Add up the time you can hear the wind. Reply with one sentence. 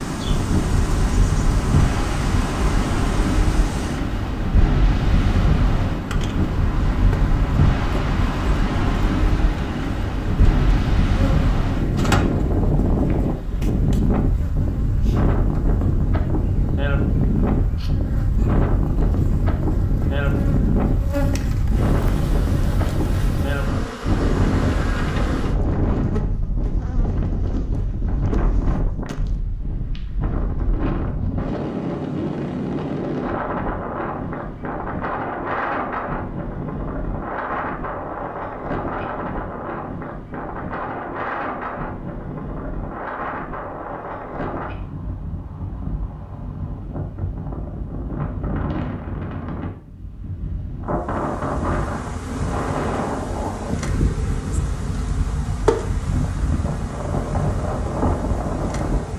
You can hear the wind for 59 seconds altogether.